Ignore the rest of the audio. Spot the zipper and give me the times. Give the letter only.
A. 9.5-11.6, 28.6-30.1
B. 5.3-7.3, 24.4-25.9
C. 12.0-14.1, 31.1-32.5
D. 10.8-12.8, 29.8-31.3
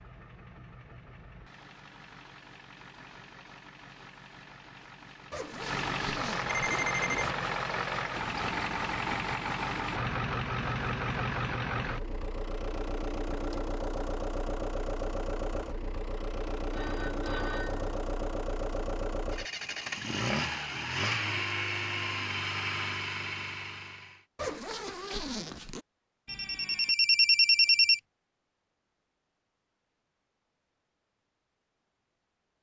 B.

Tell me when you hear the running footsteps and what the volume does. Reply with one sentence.
You can't hear the running footsteps here.